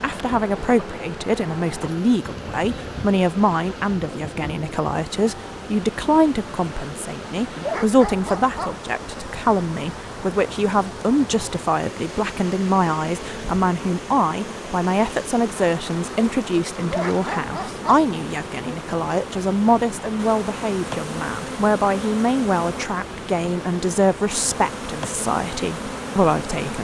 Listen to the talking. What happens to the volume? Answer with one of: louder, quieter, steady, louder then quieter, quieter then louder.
steady.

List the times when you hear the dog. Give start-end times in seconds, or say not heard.
7.5-8.8, 16.8-18.1.